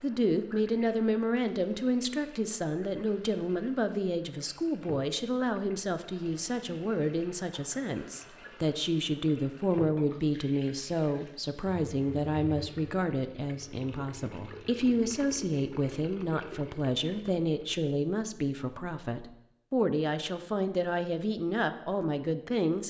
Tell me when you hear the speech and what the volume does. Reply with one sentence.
The speech can be heard from 0.0 to 22.8 s, at a steady volume.